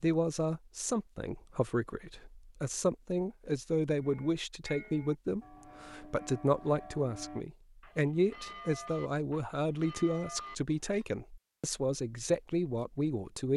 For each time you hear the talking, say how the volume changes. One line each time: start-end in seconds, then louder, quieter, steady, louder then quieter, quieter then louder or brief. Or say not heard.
0.0-13.5 steady.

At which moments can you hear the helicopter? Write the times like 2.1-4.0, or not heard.
not heard.